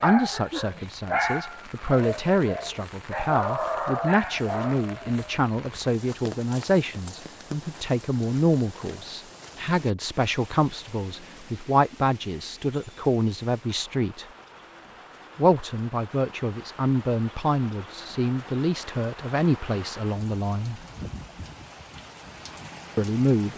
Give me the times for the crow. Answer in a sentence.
You can't hear the crow here.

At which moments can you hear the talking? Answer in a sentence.
You can hear the talking from 0.0 to 14.2 s, from 15.3 to 20.8 s and from 22.9 to 23.5 s.